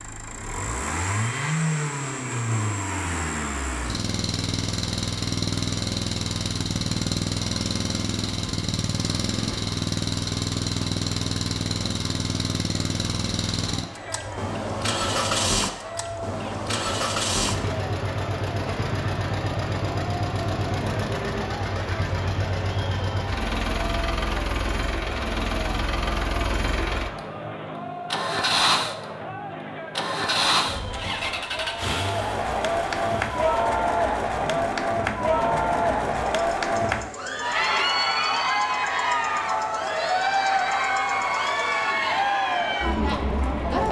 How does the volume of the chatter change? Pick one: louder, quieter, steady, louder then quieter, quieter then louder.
louder.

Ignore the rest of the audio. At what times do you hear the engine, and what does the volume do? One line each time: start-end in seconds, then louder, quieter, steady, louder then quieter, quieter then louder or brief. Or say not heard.
0.0-43.7 quieter.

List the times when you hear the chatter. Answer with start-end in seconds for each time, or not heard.
13.7-43.8.